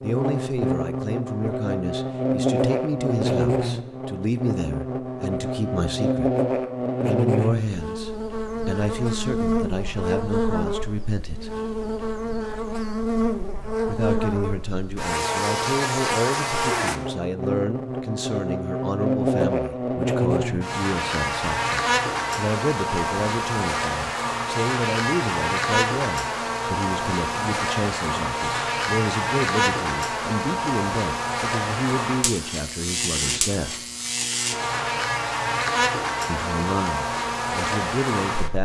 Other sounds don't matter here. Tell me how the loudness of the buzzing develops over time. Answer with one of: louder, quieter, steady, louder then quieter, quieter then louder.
steady.